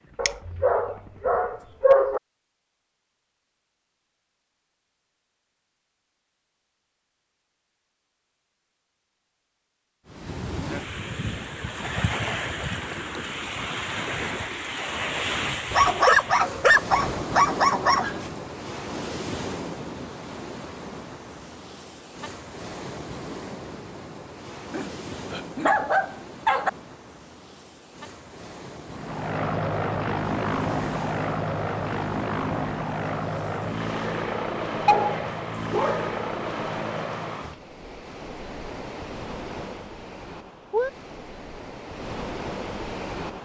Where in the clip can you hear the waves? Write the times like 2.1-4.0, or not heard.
10.1-43.3.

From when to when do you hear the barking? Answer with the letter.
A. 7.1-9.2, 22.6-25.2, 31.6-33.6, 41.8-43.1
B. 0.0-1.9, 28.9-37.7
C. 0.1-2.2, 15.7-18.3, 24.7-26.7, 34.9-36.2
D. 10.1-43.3
C.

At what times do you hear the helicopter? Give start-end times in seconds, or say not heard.
0.0-1.9, 28.9-37.7.